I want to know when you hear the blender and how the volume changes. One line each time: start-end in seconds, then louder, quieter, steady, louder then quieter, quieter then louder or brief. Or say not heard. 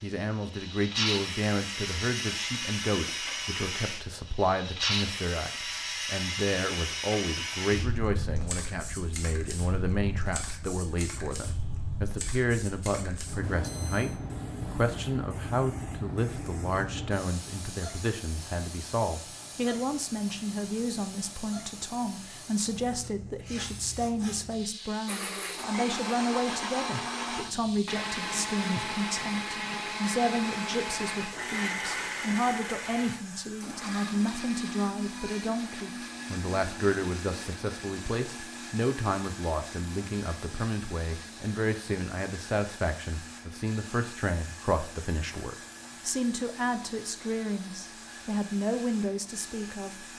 25.1-50.1 quieter.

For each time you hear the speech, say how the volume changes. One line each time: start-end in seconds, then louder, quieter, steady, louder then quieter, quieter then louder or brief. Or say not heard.
0.0-50.0 steady.